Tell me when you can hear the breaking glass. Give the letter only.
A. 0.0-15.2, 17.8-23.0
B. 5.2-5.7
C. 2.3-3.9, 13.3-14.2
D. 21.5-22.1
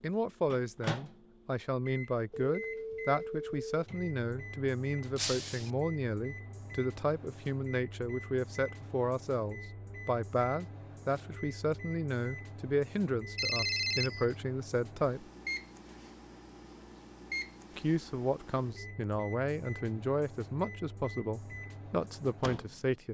B.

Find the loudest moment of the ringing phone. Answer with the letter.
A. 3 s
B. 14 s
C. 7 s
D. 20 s
B.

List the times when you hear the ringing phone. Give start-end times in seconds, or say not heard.
2.3-3.9, 13.3-14.2.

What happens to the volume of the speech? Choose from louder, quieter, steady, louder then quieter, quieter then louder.
steady.